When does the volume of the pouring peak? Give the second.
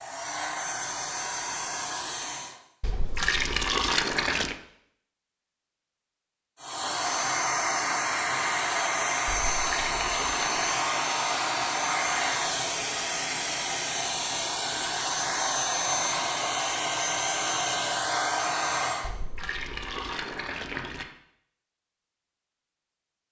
4 s.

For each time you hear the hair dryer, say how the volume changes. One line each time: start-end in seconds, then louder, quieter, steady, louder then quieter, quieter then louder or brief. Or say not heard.
0.0-2.6 brief
6.5-19.1 steady.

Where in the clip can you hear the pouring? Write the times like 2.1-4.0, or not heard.
2.8-4.5, 9.2-10.8, 19.0-21.1.